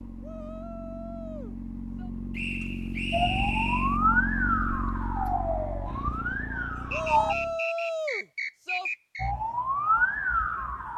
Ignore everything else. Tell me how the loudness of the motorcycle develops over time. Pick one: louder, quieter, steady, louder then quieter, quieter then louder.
louder then quieter.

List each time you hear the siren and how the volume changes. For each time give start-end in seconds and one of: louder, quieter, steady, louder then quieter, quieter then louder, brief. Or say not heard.
3.1-7.3 quieter
9.2-10.9 brief.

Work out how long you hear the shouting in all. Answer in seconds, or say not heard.
4 s.